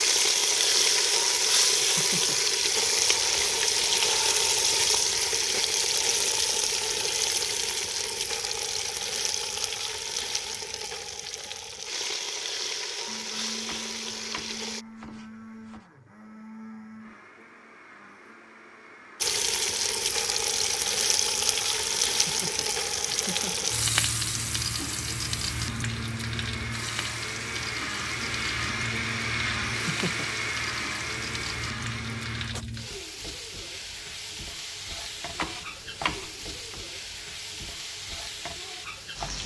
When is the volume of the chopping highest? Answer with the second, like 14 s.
36 s.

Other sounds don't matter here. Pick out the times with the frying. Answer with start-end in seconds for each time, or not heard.
0.0-14.8, 19.2-39.4.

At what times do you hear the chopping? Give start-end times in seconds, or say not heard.
13.6-15.8, 35.3-36.8.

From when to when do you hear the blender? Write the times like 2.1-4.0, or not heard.
13.1-32.6.